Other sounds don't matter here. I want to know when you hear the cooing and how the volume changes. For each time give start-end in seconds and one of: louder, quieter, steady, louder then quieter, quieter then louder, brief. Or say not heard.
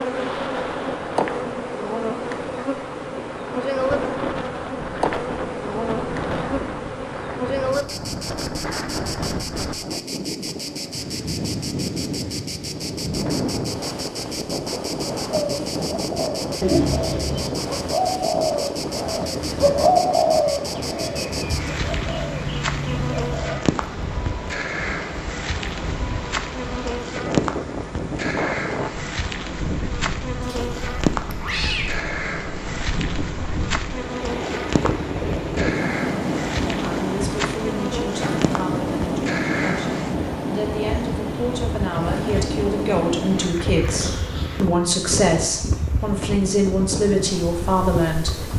15.3-23.6 louder then quieter.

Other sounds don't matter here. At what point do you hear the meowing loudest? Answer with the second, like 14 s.
17 s.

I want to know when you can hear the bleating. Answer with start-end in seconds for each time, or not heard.
not heard.